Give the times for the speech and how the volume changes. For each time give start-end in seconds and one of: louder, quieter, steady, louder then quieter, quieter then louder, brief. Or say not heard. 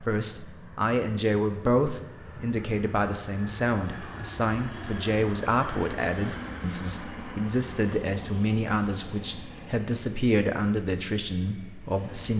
0.0-12.3 steady.